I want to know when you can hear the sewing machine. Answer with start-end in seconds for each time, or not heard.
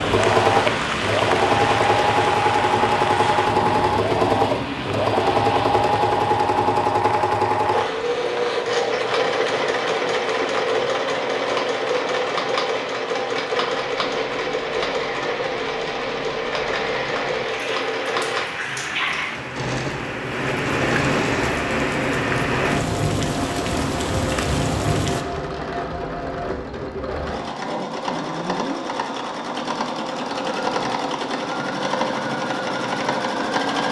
0.0-33.8.